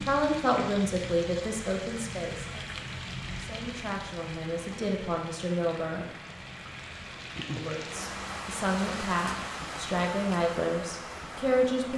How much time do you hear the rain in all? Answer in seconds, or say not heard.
12 s.